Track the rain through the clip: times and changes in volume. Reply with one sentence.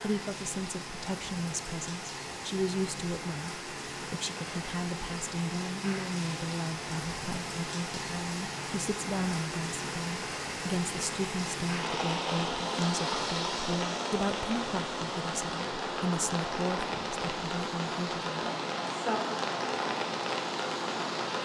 The rain can be heard from 0.0 to 21.3 s, getting louder.